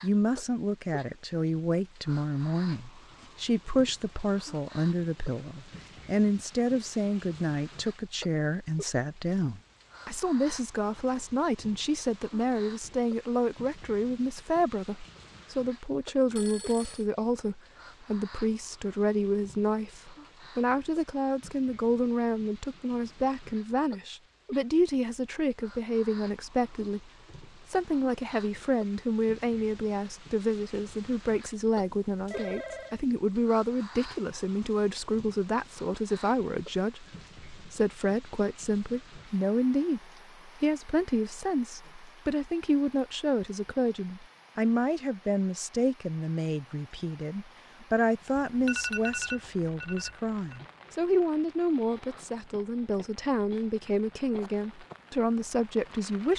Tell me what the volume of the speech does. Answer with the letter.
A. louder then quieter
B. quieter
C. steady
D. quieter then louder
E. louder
C.